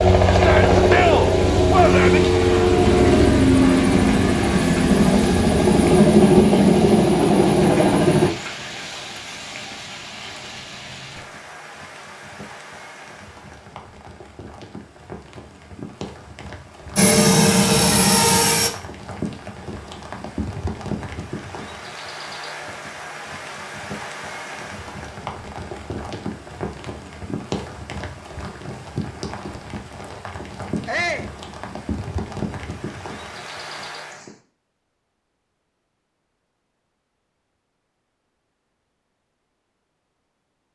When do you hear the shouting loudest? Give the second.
1 s.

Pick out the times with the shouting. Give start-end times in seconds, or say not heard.
0.3-2.2, 30.9-31.3.